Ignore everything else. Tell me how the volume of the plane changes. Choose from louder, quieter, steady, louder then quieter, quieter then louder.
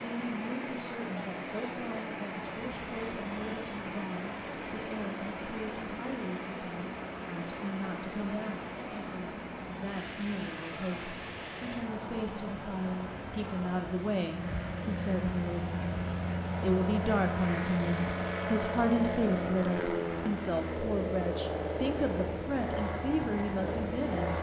louder.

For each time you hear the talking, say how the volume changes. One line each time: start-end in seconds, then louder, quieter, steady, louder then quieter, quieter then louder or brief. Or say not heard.
0.0-24.3 louder.